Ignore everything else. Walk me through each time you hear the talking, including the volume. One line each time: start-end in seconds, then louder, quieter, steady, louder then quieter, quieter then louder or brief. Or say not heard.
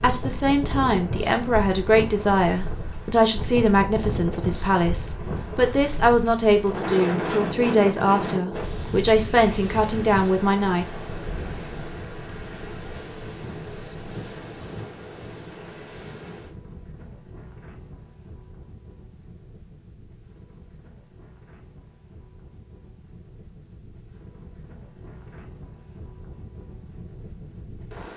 0.0-10.8 steady.